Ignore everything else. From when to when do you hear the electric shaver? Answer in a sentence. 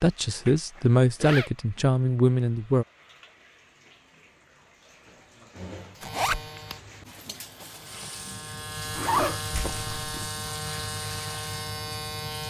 You can hear the electric shaver from 6.0 to 12.4 s.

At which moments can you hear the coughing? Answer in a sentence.
You can't hear the coughing here.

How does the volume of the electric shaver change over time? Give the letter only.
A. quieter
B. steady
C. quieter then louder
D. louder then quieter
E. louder
E.